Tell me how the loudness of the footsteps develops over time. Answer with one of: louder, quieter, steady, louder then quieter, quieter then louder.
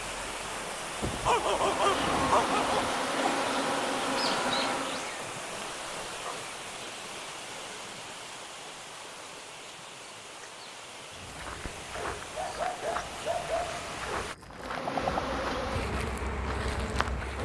steady.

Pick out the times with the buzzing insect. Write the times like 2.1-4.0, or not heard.
1.6-5.2, 14.4-17.4.